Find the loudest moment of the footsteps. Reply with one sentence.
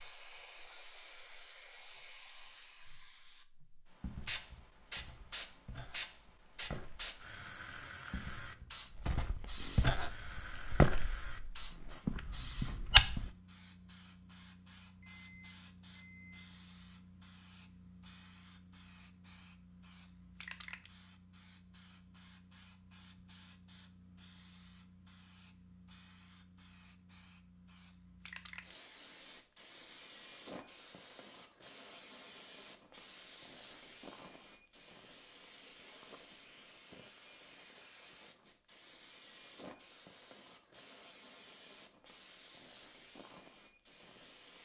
The loudest moment of the footsteps is at 13 seconds.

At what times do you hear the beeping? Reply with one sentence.
You can hear the beeping from 15.0 to 16.4 s.